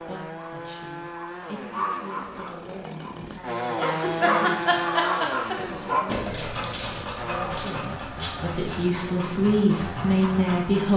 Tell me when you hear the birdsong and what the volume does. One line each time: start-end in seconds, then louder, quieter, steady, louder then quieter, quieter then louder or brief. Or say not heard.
not heard.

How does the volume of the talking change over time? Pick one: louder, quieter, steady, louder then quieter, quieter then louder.
louder.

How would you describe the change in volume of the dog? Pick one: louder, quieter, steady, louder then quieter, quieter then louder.
louder then quieter.